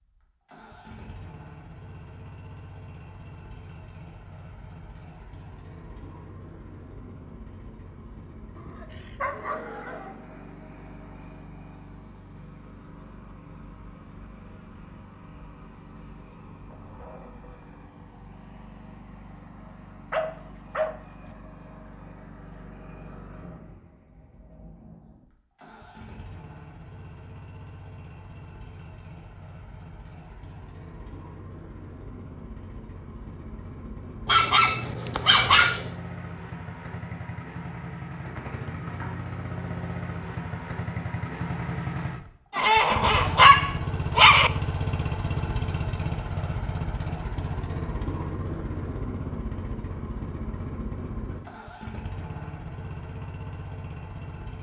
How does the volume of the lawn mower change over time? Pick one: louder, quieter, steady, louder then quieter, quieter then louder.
louder.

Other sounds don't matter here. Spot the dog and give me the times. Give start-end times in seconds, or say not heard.
8.6-10.2, 20.1-21.4, 34.2-35.9, 42.5-44.5.